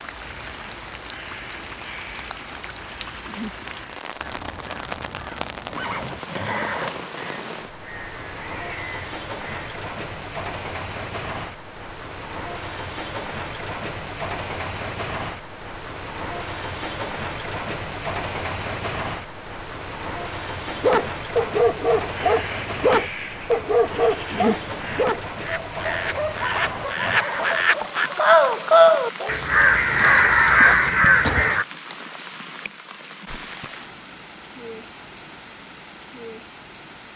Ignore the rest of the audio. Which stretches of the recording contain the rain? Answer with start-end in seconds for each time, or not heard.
0.0-37.1.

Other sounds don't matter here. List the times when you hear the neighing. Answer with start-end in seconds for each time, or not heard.
5.8-7.0, 26.4-27.7.